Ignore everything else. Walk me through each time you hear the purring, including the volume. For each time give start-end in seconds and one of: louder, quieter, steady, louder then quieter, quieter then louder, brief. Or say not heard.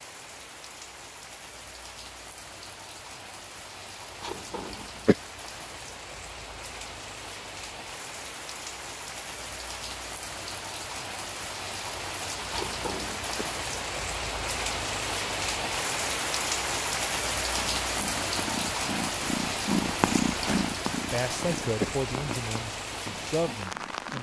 17.5-24.1 louder then quieter.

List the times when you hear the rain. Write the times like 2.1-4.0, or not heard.
0.0-24.1.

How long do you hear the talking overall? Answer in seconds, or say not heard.
3 s.